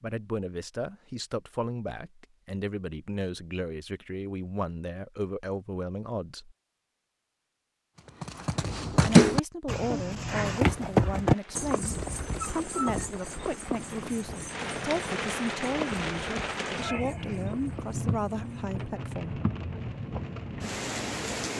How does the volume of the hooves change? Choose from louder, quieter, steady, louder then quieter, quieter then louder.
quieter.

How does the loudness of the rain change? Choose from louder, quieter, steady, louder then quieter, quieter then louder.
louder.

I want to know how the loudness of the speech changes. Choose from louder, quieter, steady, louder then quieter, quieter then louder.
steady.